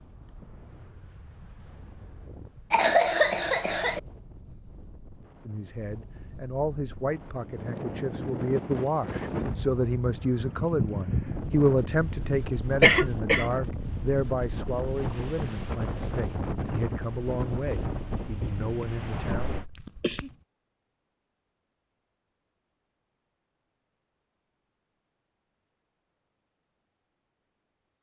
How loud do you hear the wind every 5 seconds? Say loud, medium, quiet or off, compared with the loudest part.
quiet, loud, loud, loud, off, off.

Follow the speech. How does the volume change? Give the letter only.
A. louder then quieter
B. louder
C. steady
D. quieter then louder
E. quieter
A.